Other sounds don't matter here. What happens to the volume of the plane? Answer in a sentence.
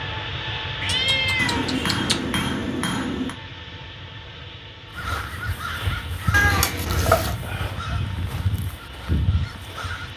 The volume of the plane goes down.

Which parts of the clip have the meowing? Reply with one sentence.
You can hear the meowing from 0.8 to 2.5 s and from 6.3 to 7.3 s.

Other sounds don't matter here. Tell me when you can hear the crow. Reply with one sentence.
You can hear the crow from 4.9 to 10.1 s.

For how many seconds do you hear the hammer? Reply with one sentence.
The hammer can be heard for 2 seconds in total.